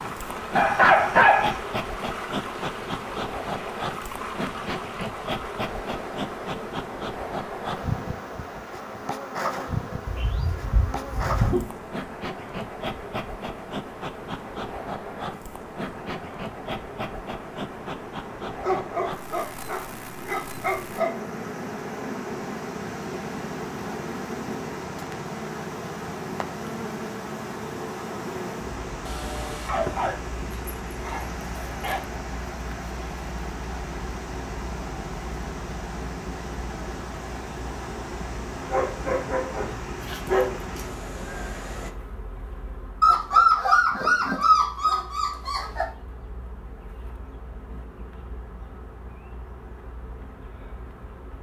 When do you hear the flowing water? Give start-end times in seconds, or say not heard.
0.0-42.0.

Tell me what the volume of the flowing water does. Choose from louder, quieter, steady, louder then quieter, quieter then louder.
quieter then louder.